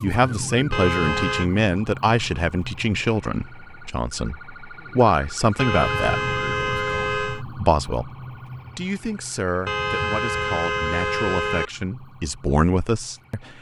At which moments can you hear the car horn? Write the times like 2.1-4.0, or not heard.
0.7-1.5, 5.5-7.5, 9.7-11.7.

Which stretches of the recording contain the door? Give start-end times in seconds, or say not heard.
not heard.